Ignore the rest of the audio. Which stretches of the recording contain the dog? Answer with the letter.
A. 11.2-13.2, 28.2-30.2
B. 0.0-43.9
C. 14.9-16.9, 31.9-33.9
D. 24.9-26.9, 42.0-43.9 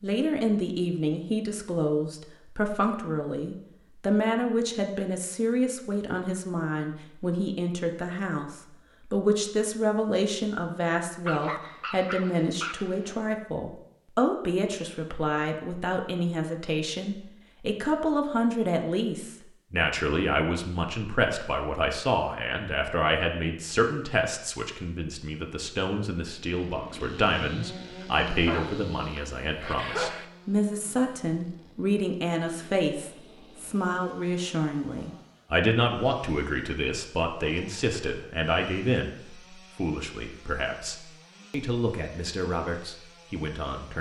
A.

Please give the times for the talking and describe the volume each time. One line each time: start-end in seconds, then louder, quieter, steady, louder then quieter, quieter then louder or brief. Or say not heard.
0.0-43.9 steady.